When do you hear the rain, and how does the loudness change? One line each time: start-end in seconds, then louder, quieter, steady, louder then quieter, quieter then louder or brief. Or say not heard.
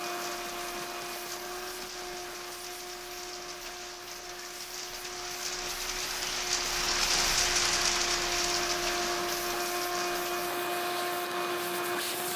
0.0-12.3 louder then quieter.